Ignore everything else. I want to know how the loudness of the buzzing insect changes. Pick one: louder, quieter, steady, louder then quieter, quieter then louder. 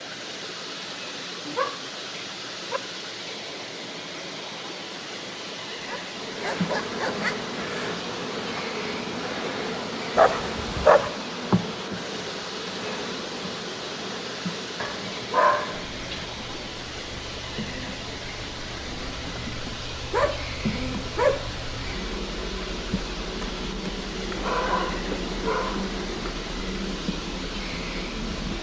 quieter then louder.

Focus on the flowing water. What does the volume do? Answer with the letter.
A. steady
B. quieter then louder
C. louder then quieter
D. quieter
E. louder
A.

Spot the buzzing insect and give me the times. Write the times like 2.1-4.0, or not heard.
6.1-28.5.